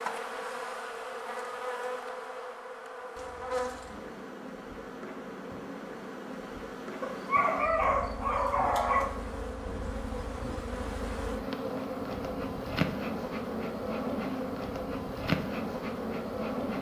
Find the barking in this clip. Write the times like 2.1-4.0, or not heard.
7.0-9.1.